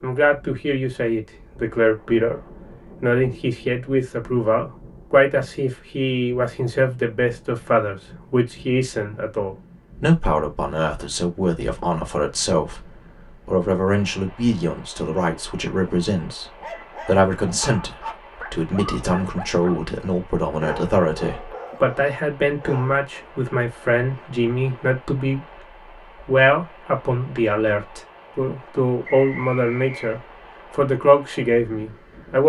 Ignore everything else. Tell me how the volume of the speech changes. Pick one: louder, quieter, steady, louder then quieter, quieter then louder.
steady.